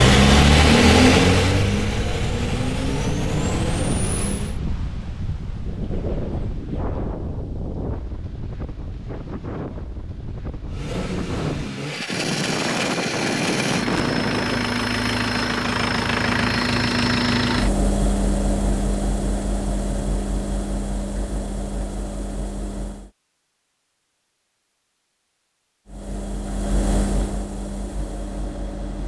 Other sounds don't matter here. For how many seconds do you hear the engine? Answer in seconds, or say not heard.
20 s.